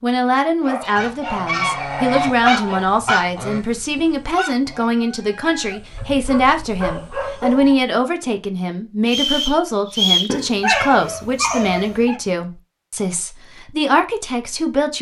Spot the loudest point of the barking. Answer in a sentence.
The loudest moment of the barking is at 11 seconds.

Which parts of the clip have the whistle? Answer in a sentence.
The whistle can be heard from 9.1 to 10.3 s.